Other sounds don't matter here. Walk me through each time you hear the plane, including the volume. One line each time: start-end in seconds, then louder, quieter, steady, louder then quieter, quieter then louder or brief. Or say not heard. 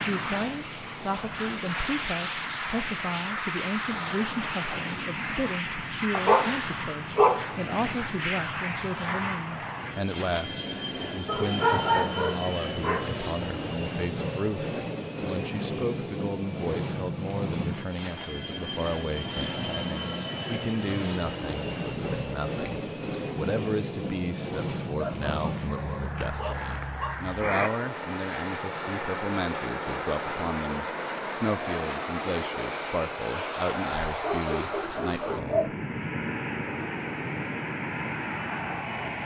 0.0-39.2 steady.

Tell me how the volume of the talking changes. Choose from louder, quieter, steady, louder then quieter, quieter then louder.
steady.